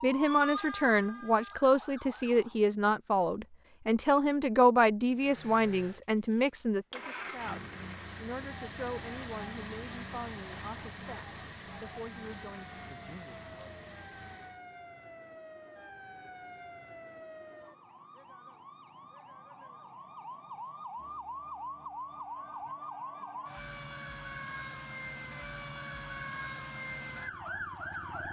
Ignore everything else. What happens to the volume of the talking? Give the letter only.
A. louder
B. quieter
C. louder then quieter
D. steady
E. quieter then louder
B.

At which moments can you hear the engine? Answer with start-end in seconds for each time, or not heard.
5.1-14.6.